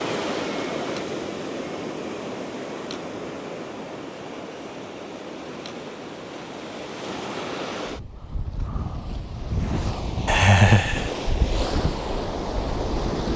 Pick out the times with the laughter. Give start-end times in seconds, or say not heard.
10.2-11.1.